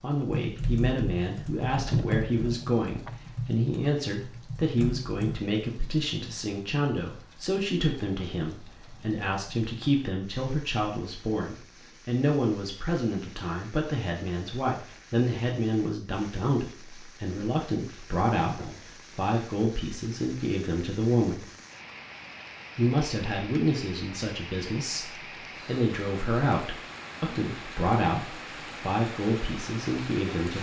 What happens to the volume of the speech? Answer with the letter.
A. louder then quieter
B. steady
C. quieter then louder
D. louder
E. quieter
B.